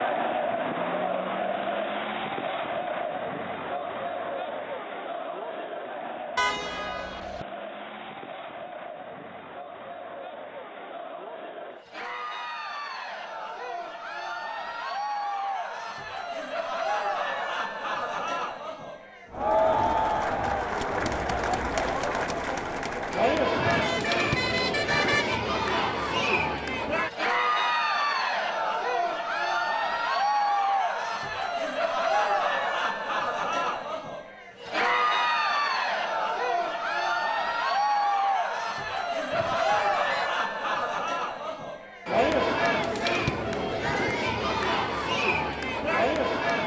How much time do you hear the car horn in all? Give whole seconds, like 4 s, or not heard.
4 s.